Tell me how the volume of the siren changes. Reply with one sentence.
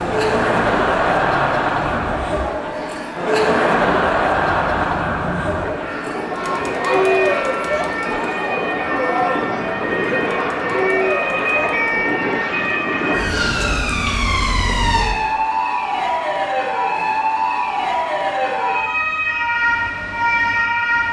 The loudness of the siren goes up.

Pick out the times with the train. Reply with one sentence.
You can't hear the train here.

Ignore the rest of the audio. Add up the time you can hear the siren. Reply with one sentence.
You can hear the siren for 21 seconds altogether.